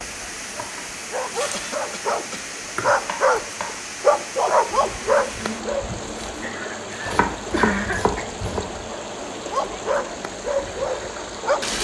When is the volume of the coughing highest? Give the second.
8 s.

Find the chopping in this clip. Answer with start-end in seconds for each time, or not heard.
3.0-3.8, 7.0-8.7.